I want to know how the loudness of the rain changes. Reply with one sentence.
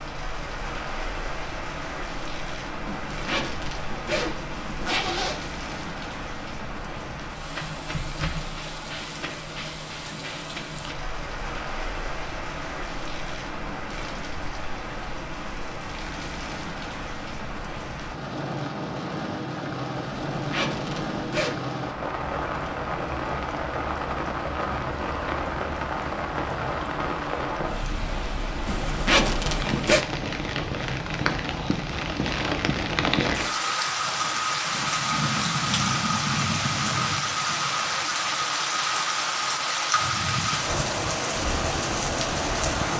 The volume of the rain goes up.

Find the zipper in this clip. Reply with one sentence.
The zipper can be heard from 2.9 to 5.3 s, from 20.4 to 21.6 s and from 28.6 to 30.1 s.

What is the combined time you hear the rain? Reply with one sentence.
You can hear the rain for 43 seconds altogether.